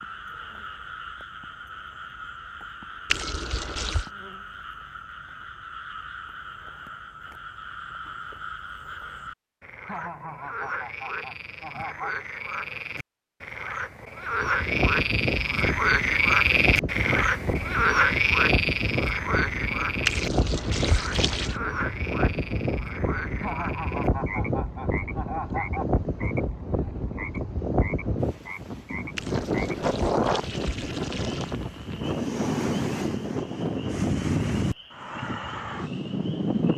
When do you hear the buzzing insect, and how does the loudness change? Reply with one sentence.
The buzzing insect can't be heard in this clip.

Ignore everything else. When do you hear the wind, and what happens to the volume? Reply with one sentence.
You can hear the wind from 14.3 to 36.7 s, at a steady volume.